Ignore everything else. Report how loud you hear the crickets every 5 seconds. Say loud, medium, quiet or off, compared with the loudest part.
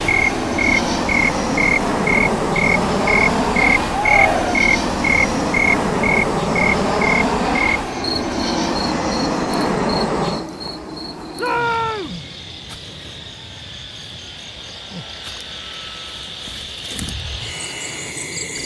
loud, loud, quiet, medium.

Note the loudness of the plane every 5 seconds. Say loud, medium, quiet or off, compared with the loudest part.
loud, loud, medium, quiet.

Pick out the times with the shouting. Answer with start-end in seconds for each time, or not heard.
3.9-4.7, 11.3-12.2.